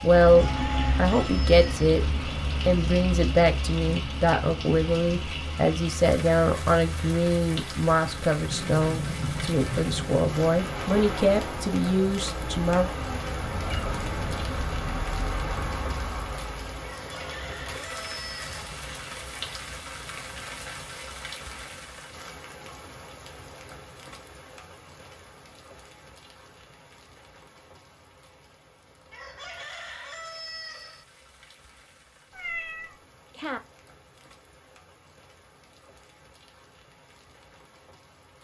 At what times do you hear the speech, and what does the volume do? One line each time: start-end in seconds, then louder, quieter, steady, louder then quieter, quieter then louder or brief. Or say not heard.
0.0-2.0 brief
2.6-12.9 steady.